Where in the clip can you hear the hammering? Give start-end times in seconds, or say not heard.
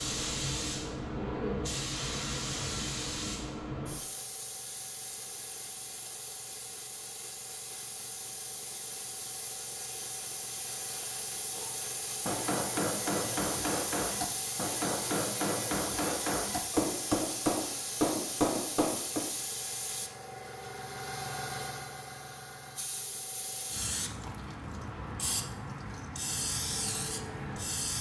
11.6-19.3.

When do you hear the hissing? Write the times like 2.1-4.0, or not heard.
0.0-27.9.